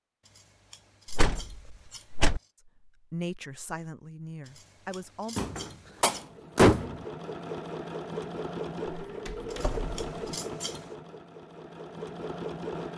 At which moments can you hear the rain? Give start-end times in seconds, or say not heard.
not heard.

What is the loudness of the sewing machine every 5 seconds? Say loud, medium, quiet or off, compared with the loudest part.
off, loud, loud.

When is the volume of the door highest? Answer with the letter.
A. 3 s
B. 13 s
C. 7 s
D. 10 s
C.